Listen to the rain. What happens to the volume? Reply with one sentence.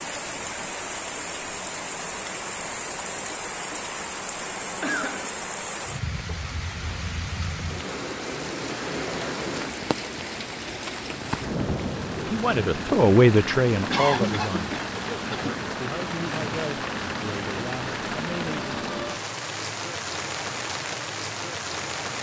The loudness of the rain stays about the same.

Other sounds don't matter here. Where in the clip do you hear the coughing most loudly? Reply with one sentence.
The loudest moment of the coughing is at 14 seconds.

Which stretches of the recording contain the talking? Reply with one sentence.
The talking can be heard from 12.2 to 18.9 s.